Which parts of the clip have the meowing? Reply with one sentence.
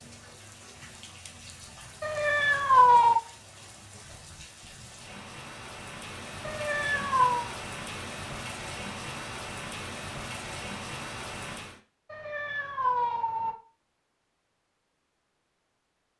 You can hear the meowing from 2.0 to 3.2 s, from 6.5 to 7.5 s and from 12.1 to 13.6 s.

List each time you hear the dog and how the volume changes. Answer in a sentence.
You can't hear the dog here.